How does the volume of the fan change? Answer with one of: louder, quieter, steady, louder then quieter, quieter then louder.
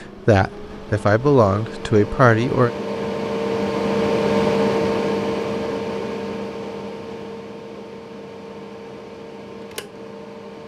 louder then quieter.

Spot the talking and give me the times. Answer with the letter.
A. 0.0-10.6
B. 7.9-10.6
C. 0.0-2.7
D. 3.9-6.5
C.